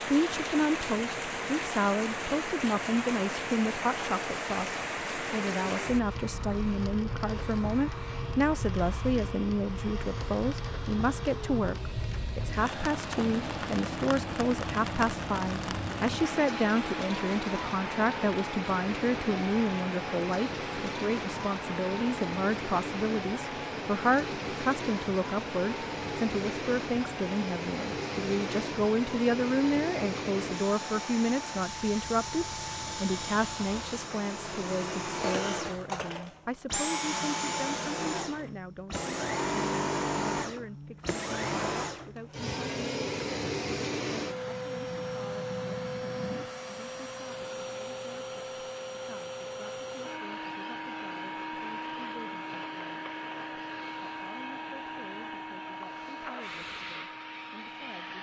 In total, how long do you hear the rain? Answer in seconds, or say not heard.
34 s.